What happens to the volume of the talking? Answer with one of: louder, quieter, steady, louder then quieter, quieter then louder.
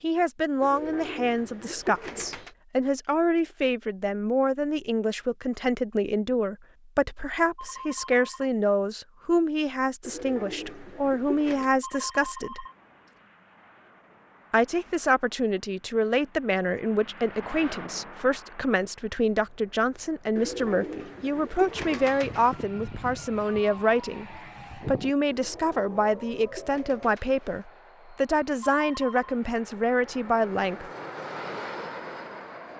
steady.